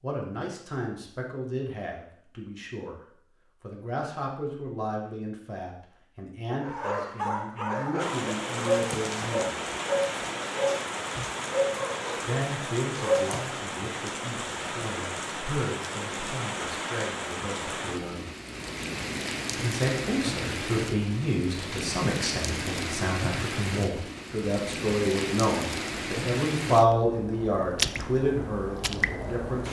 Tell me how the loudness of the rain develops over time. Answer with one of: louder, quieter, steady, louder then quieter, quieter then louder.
steady.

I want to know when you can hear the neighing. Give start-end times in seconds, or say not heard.
not heard.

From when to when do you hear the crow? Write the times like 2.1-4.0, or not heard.
not heard.